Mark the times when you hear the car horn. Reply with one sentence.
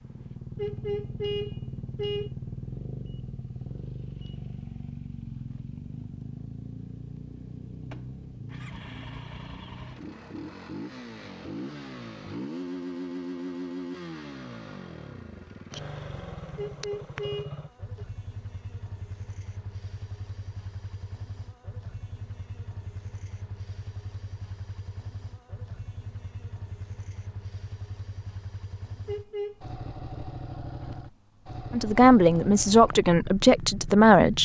You can hear the car horn from 0.6 to 2.3 s, from 16.6 to 18.1 s and from 29.1 to 29.6 s.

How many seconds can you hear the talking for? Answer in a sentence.
You can hear the talking for 3 seconds altogether.